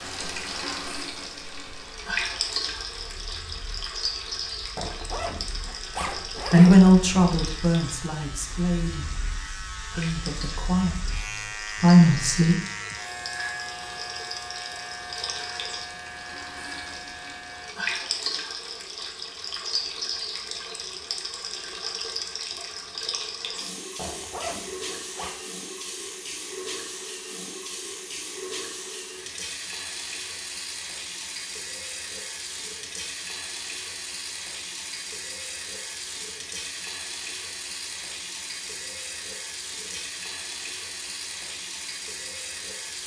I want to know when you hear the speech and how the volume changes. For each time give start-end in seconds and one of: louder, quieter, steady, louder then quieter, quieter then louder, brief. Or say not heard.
6.5-12.6 quieter then louder.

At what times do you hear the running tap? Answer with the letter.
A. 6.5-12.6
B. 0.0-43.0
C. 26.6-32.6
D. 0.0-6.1
B.